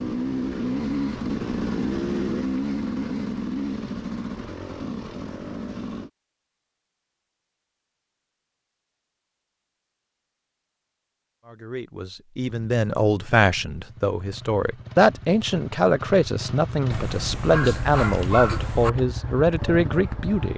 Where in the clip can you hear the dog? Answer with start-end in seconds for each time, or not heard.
16.9-18.9.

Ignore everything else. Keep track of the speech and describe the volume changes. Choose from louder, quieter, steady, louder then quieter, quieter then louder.
steady.